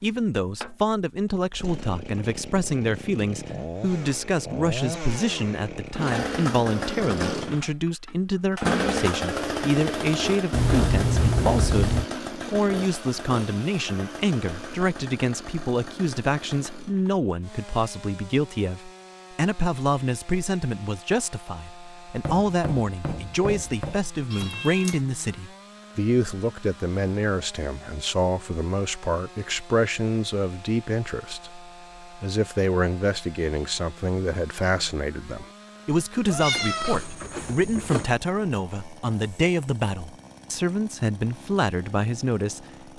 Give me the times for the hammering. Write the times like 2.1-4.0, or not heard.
22.1-24.0.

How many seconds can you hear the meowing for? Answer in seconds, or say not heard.
4 s.